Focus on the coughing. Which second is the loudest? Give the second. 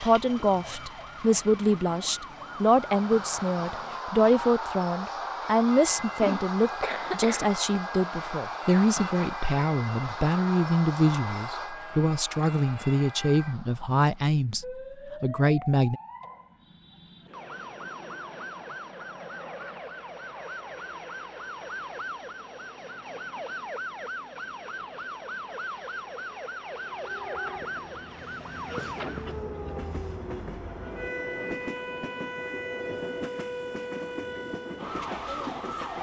7 s.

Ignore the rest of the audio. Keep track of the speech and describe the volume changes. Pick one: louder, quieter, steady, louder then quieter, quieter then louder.
steady.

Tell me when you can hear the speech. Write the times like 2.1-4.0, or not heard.
0.0-16.0.